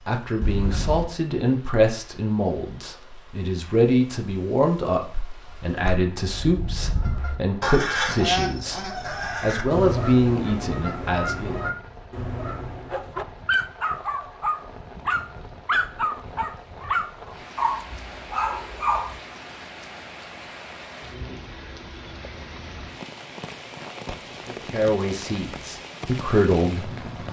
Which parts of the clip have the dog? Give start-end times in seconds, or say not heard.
12.9-19.2.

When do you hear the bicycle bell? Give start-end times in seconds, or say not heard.
0.4-1.1.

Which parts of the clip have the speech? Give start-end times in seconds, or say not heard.
0.1-11.6, 24.4-26.9.